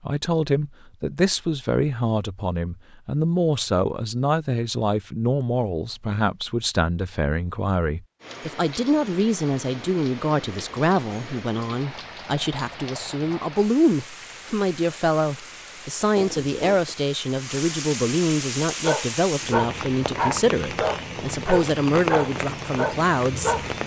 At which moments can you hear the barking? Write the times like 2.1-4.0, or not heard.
18.8-23.7.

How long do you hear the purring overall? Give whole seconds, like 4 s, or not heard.
not heard.